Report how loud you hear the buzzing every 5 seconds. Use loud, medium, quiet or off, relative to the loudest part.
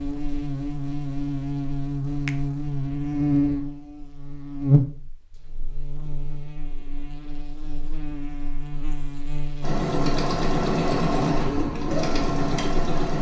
loud, quiet, medium.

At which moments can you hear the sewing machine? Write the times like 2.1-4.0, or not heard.
9.6-13.1.